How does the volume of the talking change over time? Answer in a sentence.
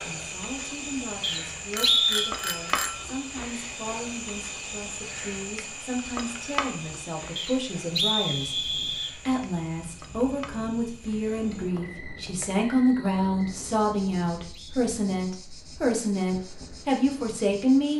The volume of the talking goes up.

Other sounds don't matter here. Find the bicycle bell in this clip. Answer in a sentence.
The bicycle bell can be heard from 1.7 to 3.0 s.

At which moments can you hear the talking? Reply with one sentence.
You can hear the talking from 0.0 to 17.9 s.